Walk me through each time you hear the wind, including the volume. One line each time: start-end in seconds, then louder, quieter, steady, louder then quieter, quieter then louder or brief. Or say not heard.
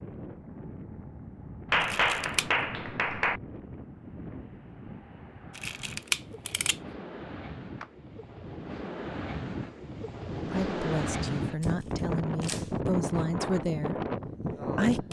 0.0-15.0 louder.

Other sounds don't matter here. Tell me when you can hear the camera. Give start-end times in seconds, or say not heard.
1.8-2.5, 5.5-6.8, 11.6-12.8.